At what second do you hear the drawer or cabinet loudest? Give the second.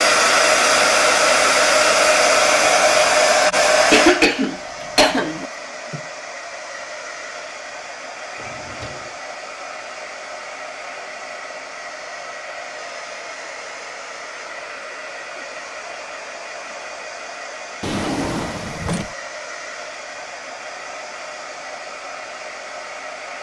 18 s.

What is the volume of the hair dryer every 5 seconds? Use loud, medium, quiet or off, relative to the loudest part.
loud, quiet, quiet, quiet, quiet.